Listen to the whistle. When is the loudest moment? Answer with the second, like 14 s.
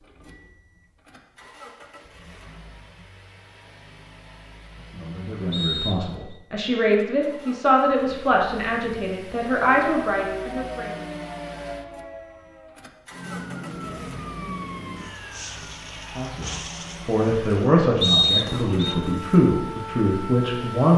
18 s.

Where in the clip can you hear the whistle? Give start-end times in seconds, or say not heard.
5.5-6.2, 18.0-18.9.